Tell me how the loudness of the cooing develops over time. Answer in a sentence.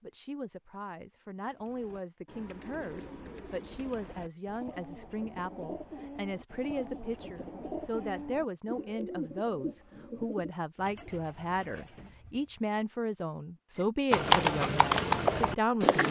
The loudness of the cooing goes up, then down.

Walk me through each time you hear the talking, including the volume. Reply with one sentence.
You can hear the talking from 0.0 to 16.0 s, getting louder.